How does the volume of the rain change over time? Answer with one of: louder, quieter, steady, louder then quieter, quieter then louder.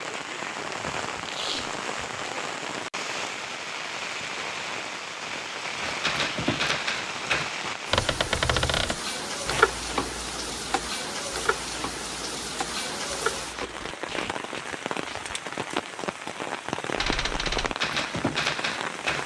steady.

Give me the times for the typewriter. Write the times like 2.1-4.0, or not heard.
5.8-13.9, 16.9-19.2.